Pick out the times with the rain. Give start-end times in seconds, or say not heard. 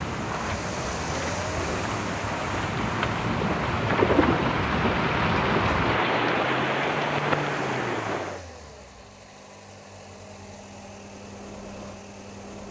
0.0-8.4.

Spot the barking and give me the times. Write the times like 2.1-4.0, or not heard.
not heard.